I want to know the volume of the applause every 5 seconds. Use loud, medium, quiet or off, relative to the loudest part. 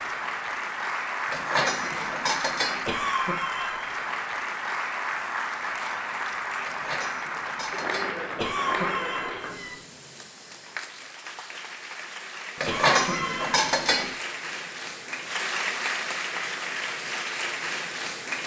loud, loud, medium, loud.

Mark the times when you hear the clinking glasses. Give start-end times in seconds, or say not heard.
1.3-2.9, 6.7-8.2, 12.6-14.2.